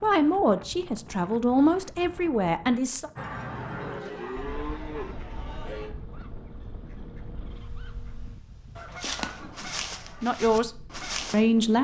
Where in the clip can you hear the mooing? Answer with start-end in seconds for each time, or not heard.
3.1-6.0.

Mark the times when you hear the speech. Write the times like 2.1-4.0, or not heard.
0.0-3.1, 10.2-11.8.